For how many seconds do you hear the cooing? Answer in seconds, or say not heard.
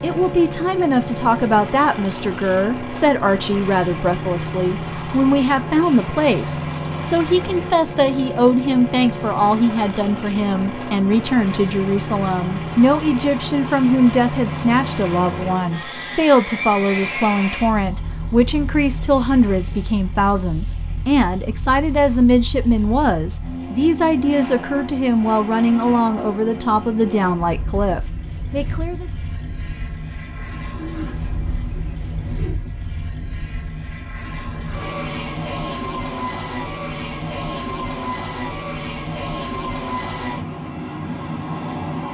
2 s.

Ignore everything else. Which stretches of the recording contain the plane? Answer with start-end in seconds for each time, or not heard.
0.0-42.1.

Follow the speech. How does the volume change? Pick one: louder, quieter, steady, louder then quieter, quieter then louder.
steady.